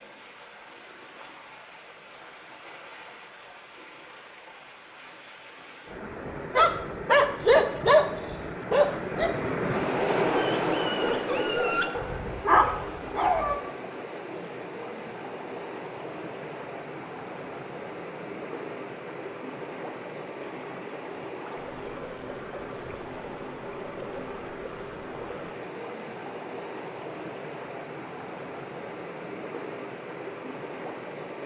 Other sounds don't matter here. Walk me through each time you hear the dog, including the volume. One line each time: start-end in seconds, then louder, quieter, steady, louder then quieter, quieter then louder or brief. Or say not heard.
6.5-13.6 quieter then louder.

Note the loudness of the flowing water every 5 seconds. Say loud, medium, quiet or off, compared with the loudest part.
quiet, loud, loud, medium, medium, medium, medium.